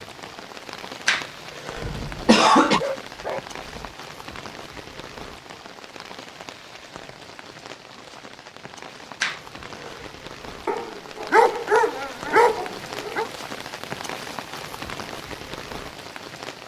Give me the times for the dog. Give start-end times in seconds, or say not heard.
1.8-4.0, 10.7-13.2.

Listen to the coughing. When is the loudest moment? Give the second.
2 s.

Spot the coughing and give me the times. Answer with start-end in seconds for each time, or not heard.
1.1-2.8, 9.2-10.1.